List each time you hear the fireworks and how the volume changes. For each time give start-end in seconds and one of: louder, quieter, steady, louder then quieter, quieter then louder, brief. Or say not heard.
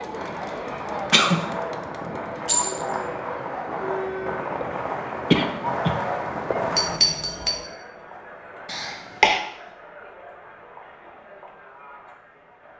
0.1-7.0 louder.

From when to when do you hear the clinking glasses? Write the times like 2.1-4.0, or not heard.
2.5-3.1, 6.8-7.5.